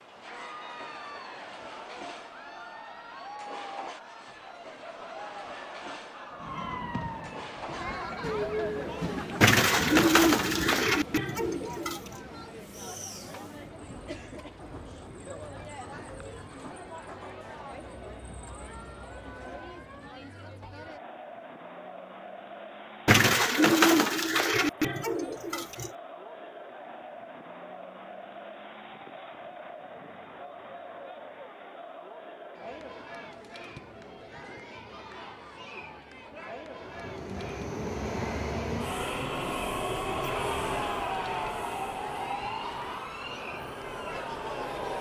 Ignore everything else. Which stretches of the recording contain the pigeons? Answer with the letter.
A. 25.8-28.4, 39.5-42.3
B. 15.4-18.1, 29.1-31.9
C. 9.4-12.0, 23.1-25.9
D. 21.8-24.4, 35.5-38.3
C.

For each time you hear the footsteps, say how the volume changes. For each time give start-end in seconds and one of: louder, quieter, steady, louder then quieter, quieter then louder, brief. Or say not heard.
not heard.